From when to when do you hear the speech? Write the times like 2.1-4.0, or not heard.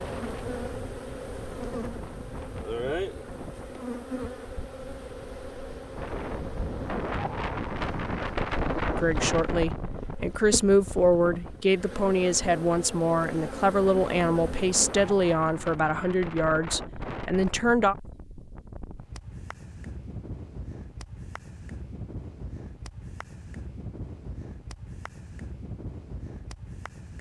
8.8-17.9.